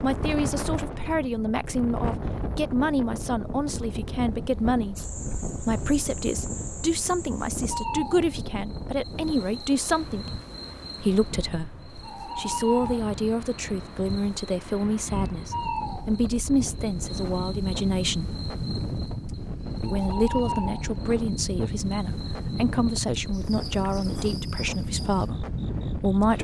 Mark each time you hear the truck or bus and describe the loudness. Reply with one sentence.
The truck or bus can't be heard in this clip.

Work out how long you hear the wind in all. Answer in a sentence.
You can hear the wind for 26 seconds altogether.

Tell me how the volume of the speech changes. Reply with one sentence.
The volume of the speech stays about the same.